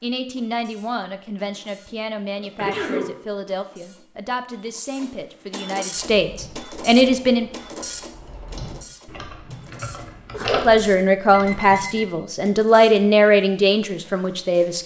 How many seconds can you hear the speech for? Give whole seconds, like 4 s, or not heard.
12 s.